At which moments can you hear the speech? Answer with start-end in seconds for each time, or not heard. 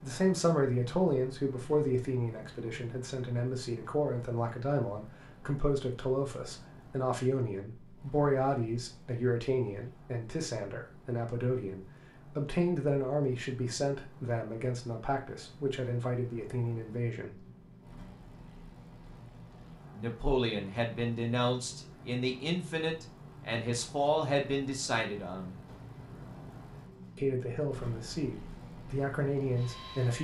0.0-17.3, 19.9-25.6, 27.1-30.1.